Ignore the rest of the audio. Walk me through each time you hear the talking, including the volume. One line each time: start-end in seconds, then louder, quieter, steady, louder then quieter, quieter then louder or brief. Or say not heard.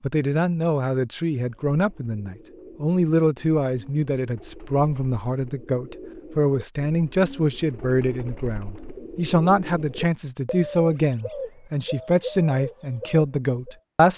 0.0-14.1 steady.